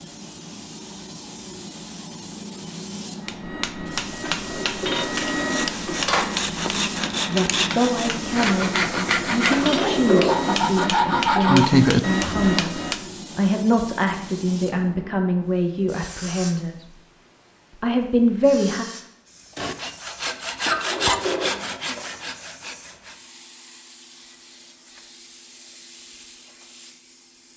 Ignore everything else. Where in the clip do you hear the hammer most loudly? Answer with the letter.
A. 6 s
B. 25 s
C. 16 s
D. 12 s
D.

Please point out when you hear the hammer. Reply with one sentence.
You can hear the hammer from 3.2 to 13.1 s.